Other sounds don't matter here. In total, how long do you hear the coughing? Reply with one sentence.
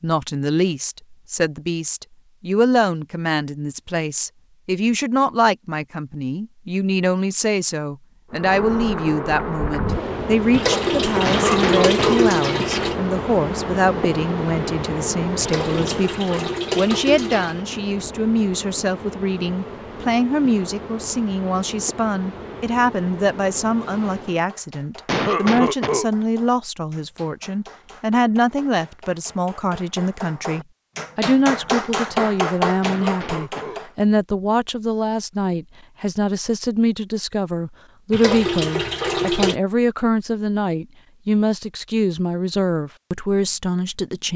The coughing can be heard for 3 seconds in total.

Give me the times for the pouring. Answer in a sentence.
The pouring can be heard from 10.5 to 12.9 s, from 15.4 to 17.6 s and from 38.1 to 39.5 s.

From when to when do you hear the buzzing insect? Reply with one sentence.
You can hear the buzzing insect from 8.3 to 24.4 s.